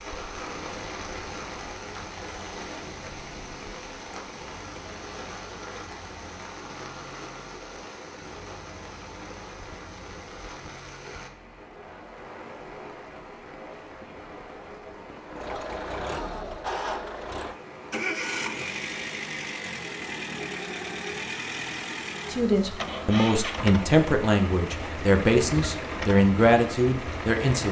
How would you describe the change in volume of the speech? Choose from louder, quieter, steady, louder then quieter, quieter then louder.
steady.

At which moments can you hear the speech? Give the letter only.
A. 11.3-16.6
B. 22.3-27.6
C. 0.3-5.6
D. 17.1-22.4
B.